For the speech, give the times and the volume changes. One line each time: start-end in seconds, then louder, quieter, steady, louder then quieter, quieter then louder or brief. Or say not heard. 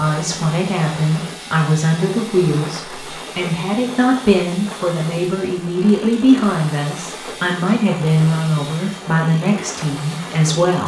0.0-10.8 steady.